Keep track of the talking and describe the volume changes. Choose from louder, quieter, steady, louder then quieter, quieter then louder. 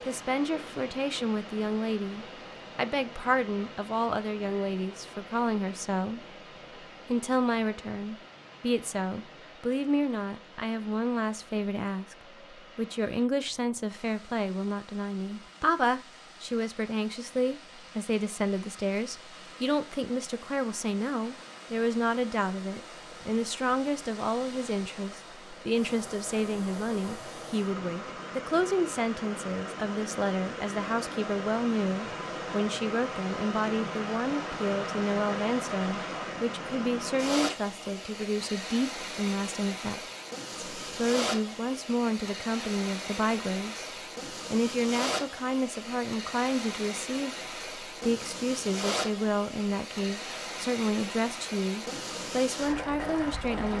steady.